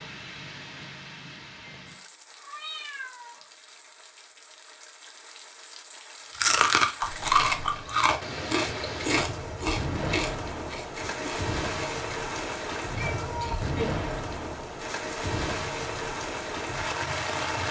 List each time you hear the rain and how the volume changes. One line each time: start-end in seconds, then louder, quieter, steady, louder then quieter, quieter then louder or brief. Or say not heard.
0.0-17.6 louder.